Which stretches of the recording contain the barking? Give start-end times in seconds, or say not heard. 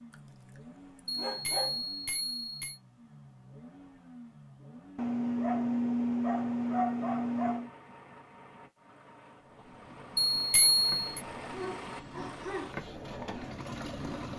0.9-1.8, 5.0-7.7, 11.5-12.8.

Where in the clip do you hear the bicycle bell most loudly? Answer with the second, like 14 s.
11 s.